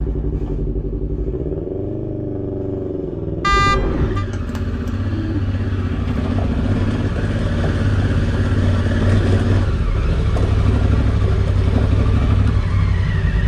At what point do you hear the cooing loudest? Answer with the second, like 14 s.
4 s.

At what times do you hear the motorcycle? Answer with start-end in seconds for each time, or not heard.
0.0-13.4.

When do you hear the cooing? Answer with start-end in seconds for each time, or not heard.
3.5-6.0.